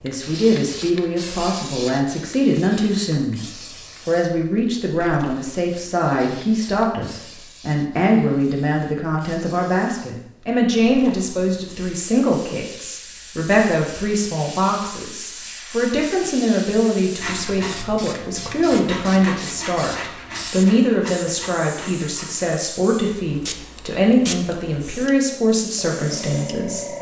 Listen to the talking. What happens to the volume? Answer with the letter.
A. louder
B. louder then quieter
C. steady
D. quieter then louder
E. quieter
C.